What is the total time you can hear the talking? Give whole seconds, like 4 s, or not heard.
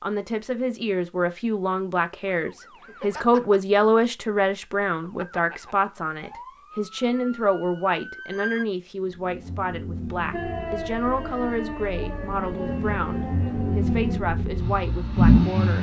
16 s.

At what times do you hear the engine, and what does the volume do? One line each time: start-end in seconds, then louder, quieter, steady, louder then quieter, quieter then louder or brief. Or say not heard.
9.0-15.7 quieter then louder.